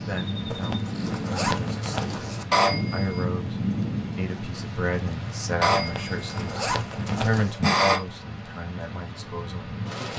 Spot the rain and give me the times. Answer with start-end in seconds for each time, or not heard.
0.0-10.1.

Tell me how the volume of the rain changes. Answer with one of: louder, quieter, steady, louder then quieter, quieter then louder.
quieter.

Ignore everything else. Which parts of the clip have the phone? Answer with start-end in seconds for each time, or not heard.
2.5-3.2, 5.6-8.1.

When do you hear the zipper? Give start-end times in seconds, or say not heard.
0.5-2.5, 5.8-7.6.